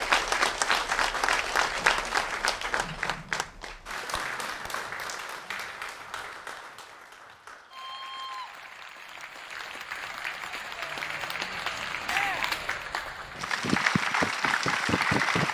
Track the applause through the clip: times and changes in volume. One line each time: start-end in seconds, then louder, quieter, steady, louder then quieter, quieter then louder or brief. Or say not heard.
0.0-15.4 quieter then louder.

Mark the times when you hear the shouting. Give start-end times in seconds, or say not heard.
12.1-12.6.